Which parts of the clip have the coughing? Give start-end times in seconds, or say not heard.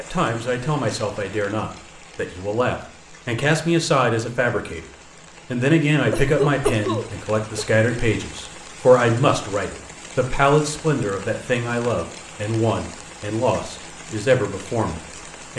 6.1-7.7.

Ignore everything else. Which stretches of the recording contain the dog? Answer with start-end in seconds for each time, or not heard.
not heard.